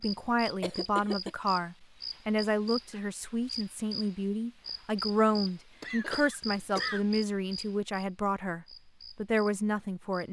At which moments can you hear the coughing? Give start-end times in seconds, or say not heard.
0.6-1.3, 5.8-7.0.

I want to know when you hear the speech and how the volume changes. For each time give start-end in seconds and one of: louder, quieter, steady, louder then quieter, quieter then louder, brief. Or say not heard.
0.0-10.2 steady.